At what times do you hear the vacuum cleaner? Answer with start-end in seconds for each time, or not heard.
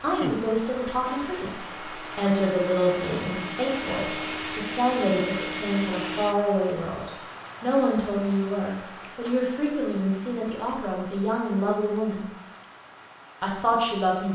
0.0-6.3.